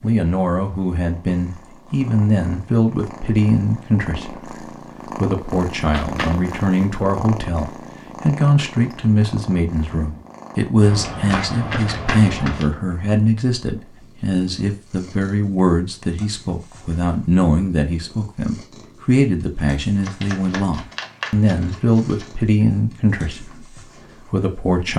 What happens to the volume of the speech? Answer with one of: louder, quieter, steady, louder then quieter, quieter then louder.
steady.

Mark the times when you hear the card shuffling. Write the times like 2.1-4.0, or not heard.
5.9-6.5, 10.8-12.7, 20.0-22.2.